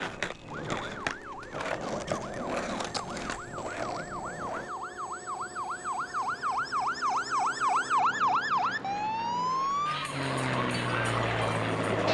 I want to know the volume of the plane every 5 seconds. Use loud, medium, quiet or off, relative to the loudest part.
quiet, quiet, loud.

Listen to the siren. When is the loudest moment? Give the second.
8 s.